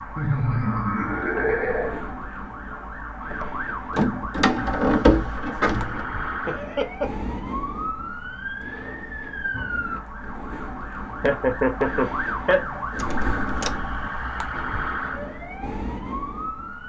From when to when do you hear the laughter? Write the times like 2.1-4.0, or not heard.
0.1-2.0, 6.5-7.1, 11.2-12.7.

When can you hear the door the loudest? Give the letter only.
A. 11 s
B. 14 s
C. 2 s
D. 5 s
D.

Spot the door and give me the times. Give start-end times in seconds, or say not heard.
3.3-6.0, 12.9-13.8.